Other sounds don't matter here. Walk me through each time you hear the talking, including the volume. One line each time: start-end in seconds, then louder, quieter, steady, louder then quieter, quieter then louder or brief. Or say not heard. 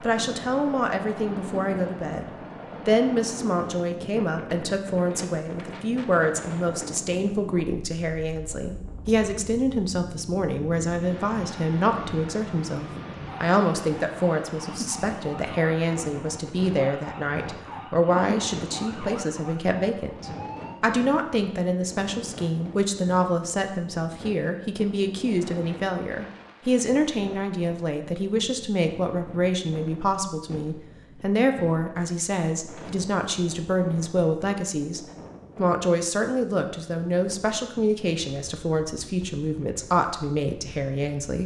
0.0-2.2 brief
2.9-41.4 steady.